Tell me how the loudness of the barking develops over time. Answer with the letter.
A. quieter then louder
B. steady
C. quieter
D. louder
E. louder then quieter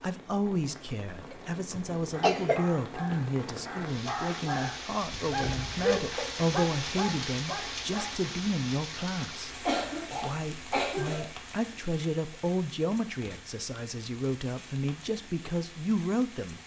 E.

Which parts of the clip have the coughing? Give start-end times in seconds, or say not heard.
1.3-2.6, 9.7-11.3.